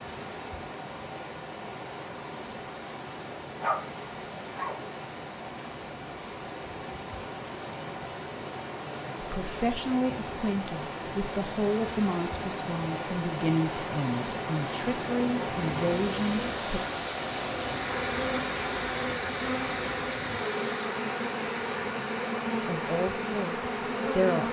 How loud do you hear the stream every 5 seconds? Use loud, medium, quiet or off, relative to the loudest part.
medium, medium, loud, loud, loud.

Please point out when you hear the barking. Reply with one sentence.
You can hear the barking from 3.6 to 4.8 s.